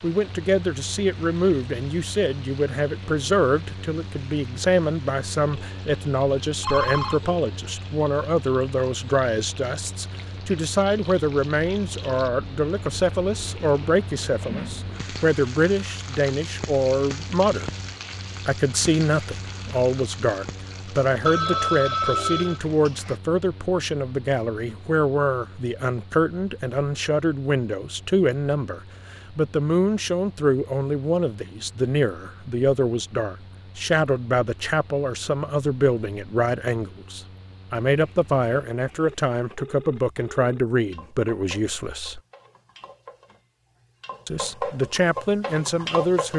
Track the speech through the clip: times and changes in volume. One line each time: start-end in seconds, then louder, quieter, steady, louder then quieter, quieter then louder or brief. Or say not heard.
0.0-17.7 steady
18.4-42.2 steady
44.2-46.3 brief.